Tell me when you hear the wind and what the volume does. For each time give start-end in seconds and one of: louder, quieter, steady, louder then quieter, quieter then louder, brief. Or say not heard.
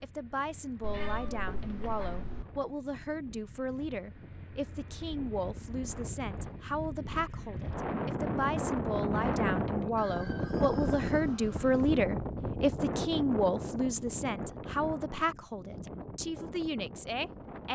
0.0-17.7 louder then quieter.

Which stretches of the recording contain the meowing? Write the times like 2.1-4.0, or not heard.
0.8-2.5.